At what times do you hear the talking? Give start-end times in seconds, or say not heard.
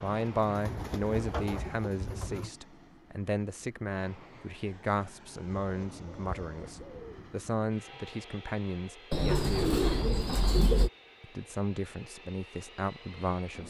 0.0-9.8, 11.2-13.6.